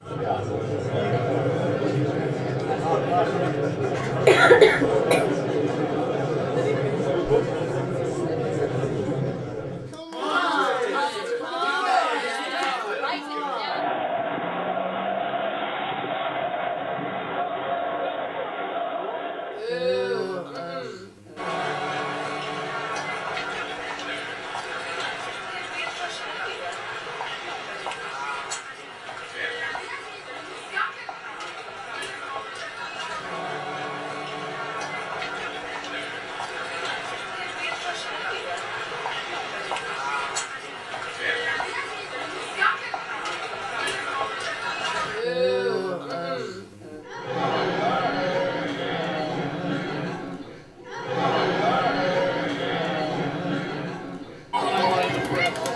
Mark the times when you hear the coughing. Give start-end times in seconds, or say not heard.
4.0-5.2.